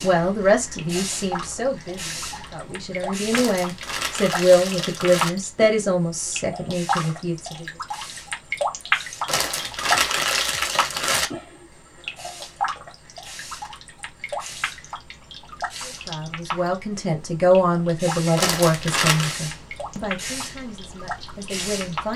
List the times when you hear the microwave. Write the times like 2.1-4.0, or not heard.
not heard.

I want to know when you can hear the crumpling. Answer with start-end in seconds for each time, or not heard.
3.3-5.3, 9.2-11.3, 18.4-19.4.